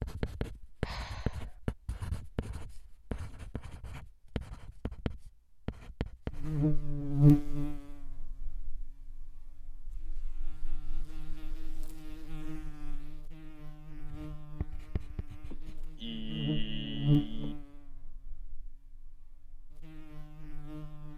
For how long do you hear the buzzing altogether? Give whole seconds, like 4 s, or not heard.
15 s.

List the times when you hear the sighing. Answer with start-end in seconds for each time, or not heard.
0.8-1.6, 15.5-17.6.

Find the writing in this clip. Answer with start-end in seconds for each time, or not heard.
0.0-6.7, 14.1-15.8.